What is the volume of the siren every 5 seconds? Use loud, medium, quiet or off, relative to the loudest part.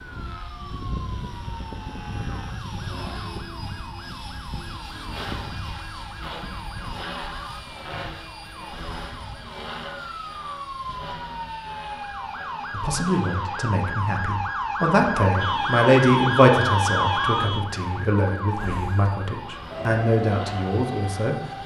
quiet, quiet, medium, loud, medium.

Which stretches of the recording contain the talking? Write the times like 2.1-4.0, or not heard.
12.7-21.4.